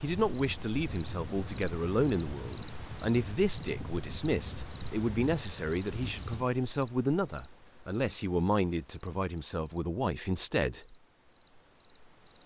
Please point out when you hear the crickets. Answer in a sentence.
You can hear the crickets from 0.0 to 12.4 s.